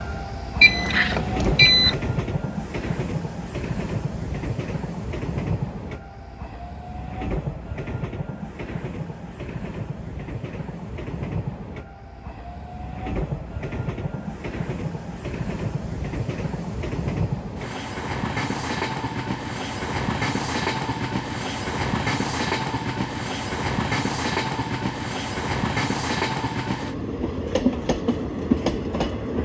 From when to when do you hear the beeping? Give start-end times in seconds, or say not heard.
0.6-1.9.